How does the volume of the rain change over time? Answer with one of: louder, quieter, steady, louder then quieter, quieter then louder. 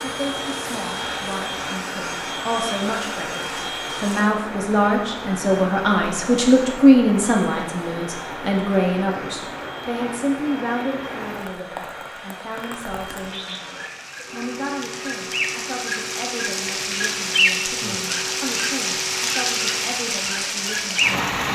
louder.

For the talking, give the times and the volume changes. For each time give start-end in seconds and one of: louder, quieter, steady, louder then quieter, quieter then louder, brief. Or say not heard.
0.0-21.2 louder then quieter.